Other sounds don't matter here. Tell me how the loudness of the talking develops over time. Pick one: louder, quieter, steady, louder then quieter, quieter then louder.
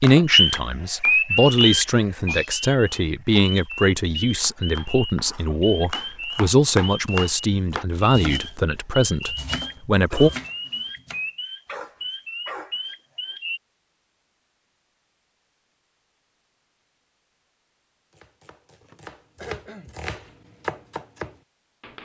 steady.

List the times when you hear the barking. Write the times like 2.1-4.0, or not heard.
11.7-12.8.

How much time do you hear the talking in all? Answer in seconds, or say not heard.
10 s.